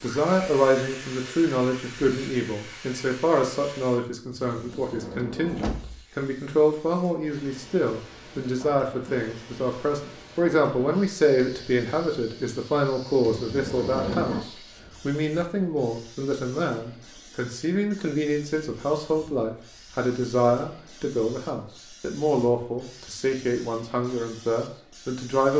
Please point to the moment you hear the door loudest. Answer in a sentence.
The volume of the door peaks at 14 seconds.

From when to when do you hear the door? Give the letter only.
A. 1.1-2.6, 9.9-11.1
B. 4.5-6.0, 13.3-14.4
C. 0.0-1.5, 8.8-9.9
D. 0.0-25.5
B.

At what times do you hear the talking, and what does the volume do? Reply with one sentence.
You can hear the talking from 0.0 to 25.5 s, at a steady volume.